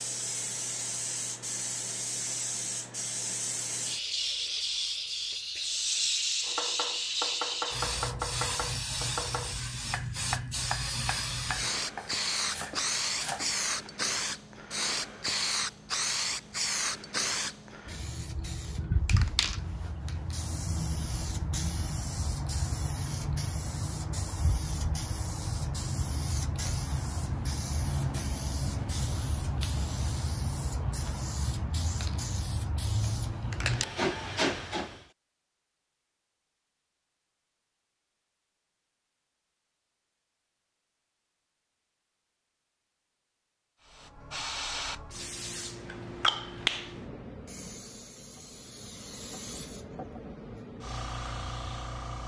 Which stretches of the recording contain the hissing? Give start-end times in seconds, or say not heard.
0.0-35.0, 43.8-52.2.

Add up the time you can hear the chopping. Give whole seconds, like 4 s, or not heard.
7 s.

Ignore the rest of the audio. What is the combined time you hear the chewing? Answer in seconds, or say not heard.
not heard.